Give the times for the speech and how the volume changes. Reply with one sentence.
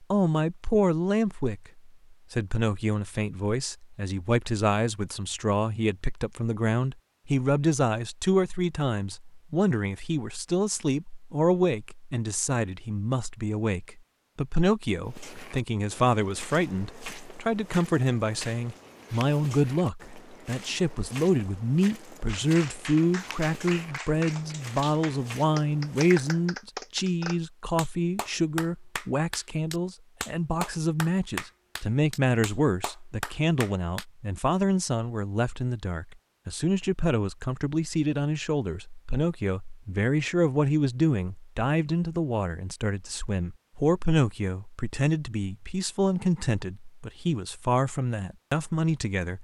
The speech can be heard from 0.0 to 49.4 s, at a steady volume.